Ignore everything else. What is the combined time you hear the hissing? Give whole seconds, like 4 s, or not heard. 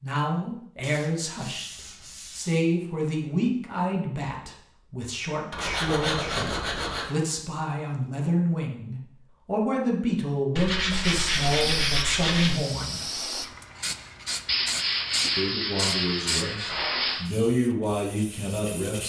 8 s.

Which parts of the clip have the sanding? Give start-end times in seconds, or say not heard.
0.8-2.6, 5.5-7.2, 10.6-12.6, 14.4-17.2.